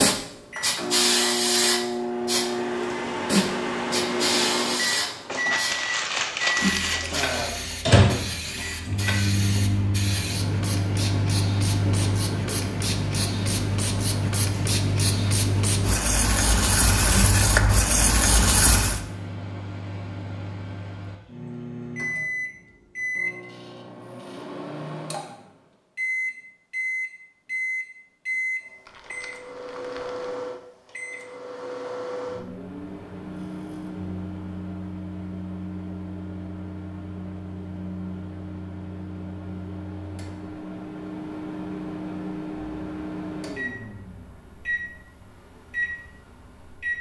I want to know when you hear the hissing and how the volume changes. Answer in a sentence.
The hissing can be heard from 0.0 to 19.0 s, getting quieter then louder.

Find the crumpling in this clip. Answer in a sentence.
The crumpling can be heard from 5.2 to 7.2 s and from 28.9 to 30.2 s.